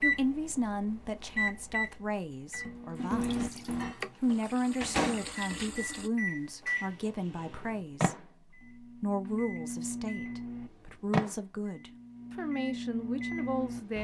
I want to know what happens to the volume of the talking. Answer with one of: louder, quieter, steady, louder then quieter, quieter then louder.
steady.